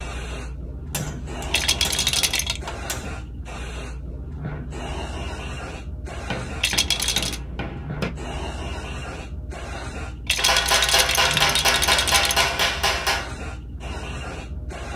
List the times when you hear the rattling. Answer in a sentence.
The rattling can be heard from 1.5 to 2.6 s, from 6.6 to 7.4 s and from 10.2 to 12.5 s.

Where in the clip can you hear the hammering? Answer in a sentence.
You can hear the hammering from 0.9 to 3.2 s, from 6.1 to 8.1 s and from 10.3 to 13.2 s.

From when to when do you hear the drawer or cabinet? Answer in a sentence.
You can't hear the drawer or cabinet here.